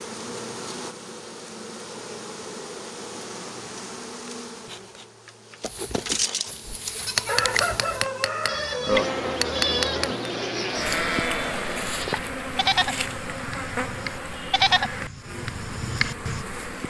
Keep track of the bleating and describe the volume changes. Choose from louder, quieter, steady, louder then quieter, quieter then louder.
louder.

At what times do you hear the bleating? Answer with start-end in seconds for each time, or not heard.
5.6-16.4.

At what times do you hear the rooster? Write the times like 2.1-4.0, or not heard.
7.0-9.0.